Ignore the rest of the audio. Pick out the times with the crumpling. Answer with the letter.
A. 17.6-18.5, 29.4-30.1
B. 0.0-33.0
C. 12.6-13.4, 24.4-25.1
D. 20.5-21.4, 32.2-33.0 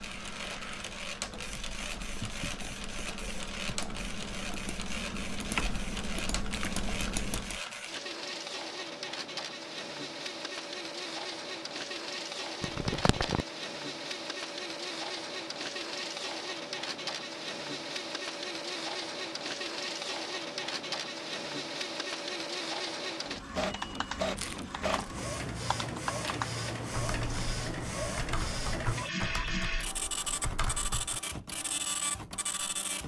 C.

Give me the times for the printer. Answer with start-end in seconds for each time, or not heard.
0.0-33.0.